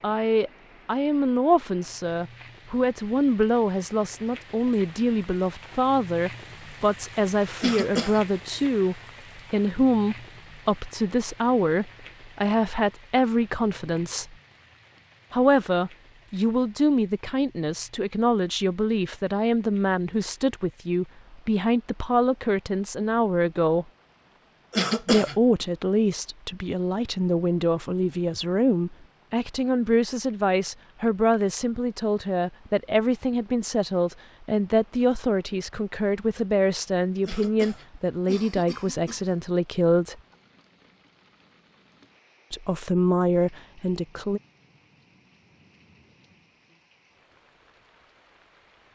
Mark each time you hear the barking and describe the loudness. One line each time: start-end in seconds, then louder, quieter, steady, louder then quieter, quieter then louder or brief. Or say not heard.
not heard.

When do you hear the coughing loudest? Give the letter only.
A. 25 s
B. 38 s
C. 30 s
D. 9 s
A.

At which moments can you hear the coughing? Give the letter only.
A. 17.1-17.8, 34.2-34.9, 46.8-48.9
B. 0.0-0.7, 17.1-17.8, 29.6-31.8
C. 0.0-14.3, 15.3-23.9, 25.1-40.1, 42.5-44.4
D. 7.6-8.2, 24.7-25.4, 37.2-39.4
D.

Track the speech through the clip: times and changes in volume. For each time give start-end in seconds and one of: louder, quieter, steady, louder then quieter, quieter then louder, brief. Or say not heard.
0.0-14.3 steady
15.3-23.9 steady
25.1-40.1 steady
42.5-44.4 brief.